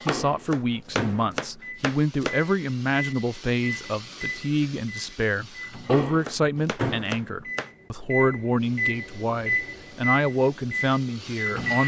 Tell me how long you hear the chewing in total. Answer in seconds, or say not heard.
not heard.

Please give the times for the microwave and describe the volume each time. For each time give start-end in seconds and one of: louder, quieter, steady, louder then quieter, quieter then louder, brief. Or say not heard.
0.0-11.8 louder.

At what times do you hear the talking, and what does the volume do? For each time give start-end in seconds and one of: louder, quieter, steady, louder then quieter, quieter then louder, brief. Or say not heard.
0.0-11.8 steady.